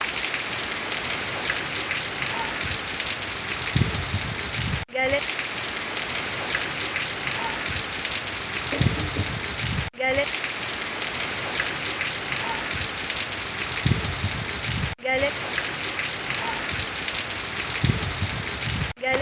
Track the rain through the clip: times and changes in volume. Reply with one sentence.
The rain can be heard from 0.0 to 19.1 s, at a steady volume.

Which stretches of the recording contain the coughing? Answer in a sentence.
The coughing can be heard from 8.7 to 9.4 s.